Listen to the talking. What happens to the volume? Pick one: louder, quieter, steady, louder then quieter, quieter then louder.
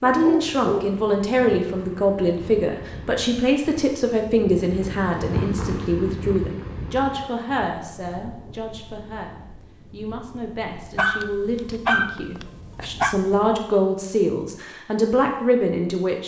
quieter then louder.